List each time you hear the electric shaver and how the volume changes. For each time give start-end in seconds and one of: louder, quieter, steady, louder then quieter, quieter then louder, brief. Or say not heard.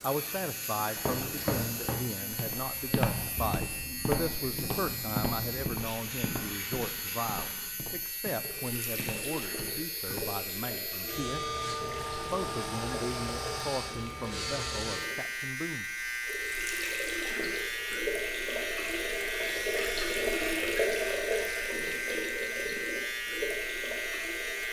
0.0-24.6 louder.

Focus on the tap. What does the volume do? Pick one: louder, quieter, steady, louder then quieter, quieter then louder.
louder.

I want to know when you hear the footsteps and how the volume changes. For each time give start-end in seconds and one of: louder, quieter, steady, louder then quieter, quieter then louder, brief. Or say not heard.
0.9-10.2 quieter.